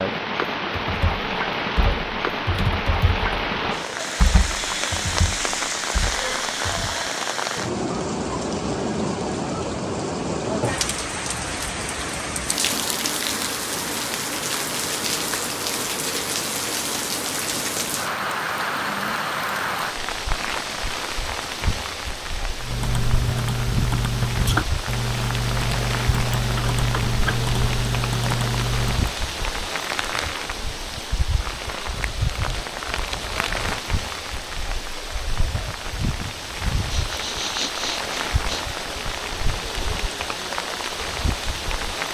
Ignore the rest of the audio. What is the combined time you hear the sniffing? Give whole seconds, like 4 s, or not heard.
2 s.